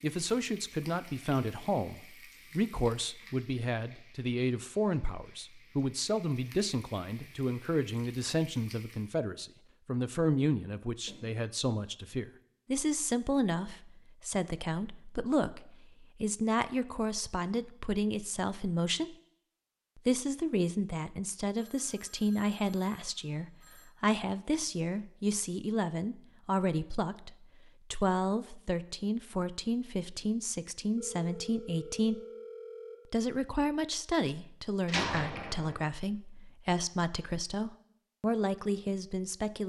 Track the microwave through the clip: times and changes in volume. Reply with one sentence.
The microwave can't be heard in this clip.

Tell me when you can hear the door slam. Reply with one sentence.
The door slam can be heard from 34.9 to 35.8 s.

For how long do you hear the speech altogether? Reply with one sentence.
The speech can be heard for 38 seconds in total.